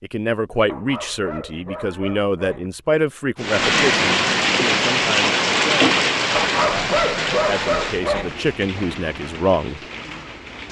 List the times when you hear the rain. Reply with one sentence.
The rain can be heard from 3.4 to 10.6 s.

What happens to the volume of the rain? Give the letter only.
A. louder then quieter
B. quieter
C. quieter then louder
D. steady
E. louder
B.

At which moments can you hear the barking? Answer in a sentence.
The barking can be heard from 0.7 to 2.7 s and from 6.3 to 8.3 s.